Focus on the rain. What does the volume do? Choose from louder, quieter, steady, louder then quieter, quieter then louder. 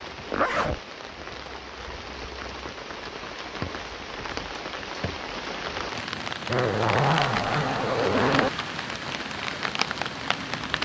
louder.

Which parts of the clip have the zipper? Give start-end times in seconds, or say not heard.
0.3-0.8, 6.5-8.5.